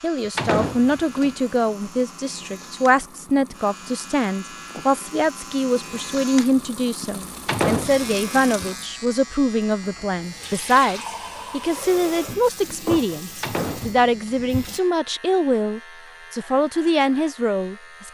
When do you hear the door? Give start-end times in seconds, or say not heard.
0.3-1.2, 7.5-8.2, 13.4-14.3.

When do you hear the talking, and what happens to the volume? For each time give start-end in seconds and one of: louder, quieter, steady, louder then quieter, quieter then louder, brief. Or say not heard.
0.0-18.0 steady.